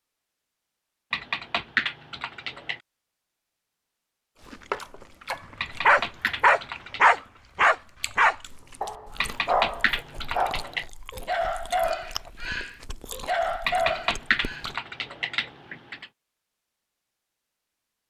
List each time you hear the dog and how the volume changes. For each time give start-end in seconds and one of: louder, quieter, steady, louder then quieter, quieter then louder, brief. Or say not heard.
5.3-14.7 quieter.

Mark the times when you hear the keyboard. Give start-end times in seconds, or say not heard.
1.1-2.8, 5.6-7.2, 9.2-10.8, 13.7-16.1.